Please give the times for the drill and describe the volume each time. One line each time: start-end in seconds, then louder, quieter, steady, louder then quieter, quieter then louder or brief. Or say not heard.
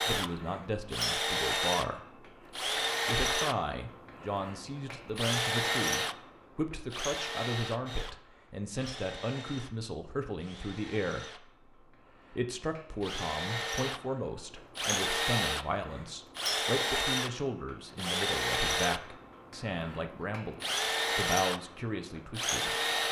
0.0-23.0 quieter then louder.